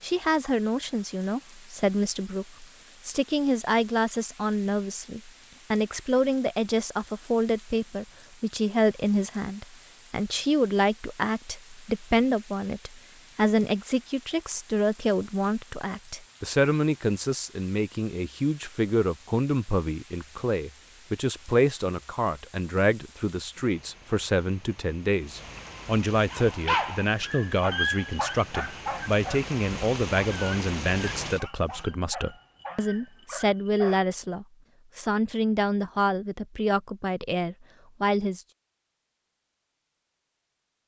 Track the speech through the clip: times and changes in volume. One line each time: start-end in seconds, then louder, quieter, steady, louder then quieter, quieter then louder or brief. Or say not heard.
0.0-38.4 steady.